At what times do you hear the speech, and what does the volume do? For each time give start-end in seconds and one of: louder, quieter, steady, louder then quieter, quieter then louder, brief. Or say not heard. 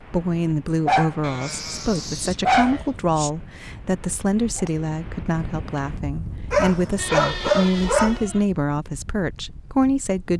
0.1-10.3 steady.